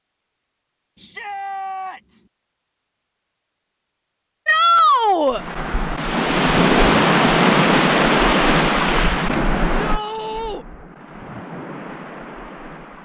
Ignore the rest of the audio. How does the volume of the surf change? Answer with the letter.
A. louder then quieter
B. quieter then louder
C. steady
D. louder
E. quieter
E.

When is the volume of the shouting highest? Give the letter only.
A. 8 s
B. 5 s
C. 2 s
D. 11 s
B.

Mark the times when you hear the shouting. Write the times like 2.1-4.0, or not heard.
0.9-2.2, 4.5-5.4, 9.7-10.7.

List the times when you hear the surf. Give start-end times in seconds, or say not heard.
5.3-13.0.